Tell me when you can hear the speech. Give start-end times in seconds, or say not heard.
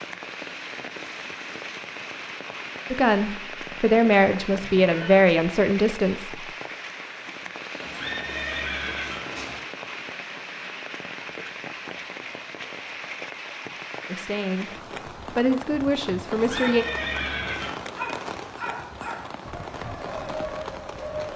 2.9-6.5, 14.1-16.9.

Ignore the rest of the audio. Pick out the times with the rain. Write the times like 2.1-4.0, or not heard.
0.0-21.3.